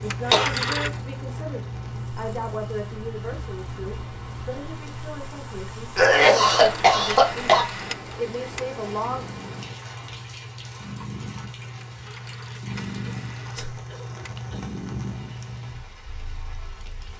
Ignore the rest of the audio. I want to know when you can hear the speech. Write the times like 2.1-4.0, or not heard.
0.0-9.2.